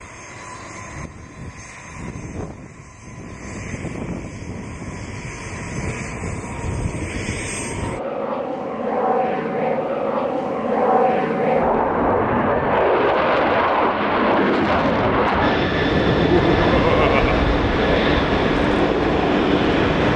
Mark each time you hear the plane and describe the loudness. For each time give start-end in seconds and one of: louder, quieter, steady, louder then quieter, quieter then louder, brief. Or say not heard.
0.0-20.1 louder.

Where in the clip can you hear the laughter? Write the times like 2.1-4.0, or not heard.
15.9-17.4.